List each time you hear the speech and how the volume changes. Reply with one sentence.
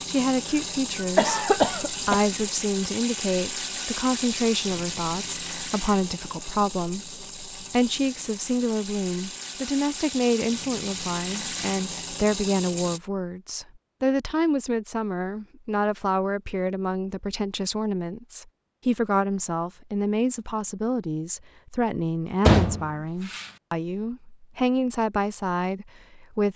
You can hear the speech from 0.1 to 26.5 s, at a steady volume.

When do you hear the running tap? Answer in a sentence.
The running tap can be heard from 0.0 to 13.0 s.